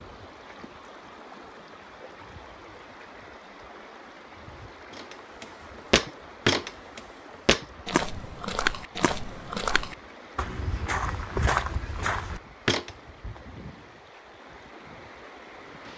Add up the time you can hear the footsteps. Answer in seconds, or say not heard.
8 s.